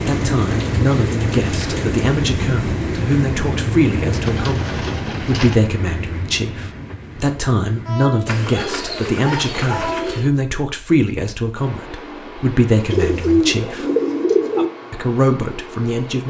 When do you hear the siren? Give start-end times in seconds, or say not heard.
not heard.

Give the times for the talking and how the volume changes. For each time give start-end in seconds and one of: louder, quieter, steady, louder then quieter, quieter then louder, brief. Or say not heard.
0.1-13.8 steady
14.9-16.2 brief.